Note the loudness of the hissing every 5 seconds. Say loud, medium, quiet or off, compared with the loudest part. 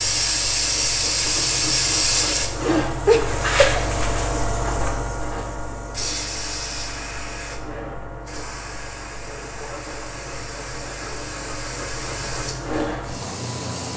loud, medium, medium.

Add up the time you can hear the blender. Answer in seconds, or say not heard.
not heard.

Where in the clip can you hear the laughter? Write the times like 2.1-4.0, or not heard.
3.0-3.8.